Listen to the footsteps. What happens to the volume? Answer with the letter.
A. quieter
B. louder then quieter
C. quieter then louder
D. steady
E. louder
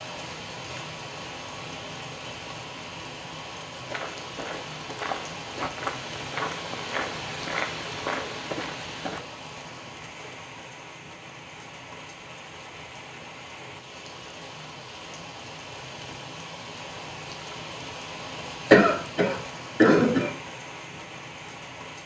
D.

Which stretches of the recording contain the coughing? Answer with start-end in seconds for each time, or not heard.
18.7-20.3.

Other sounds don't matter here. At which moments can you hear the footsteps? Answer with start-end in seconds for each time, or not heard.
3.9-9.2.